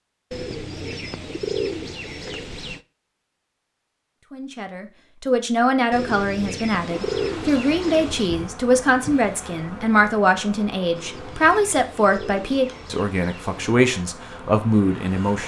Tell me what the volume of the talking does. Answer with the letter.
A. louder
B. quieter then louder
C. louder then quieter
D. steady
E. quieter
D.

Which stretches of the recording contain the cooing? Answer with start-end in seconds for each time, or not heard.
0.3-2.8, 5.9-8.3, 10.9-13.8.